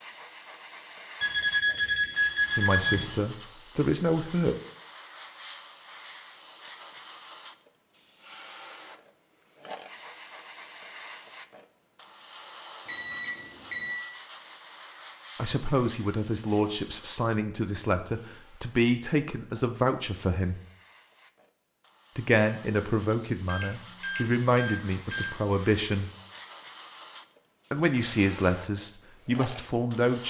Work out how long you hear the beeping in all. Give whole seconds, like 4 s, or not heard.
5 s.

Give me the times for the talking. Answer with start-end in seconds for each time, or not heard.
2.5-4.5, 15.3-20.6, 22.1-26.1, 27.7-30.2.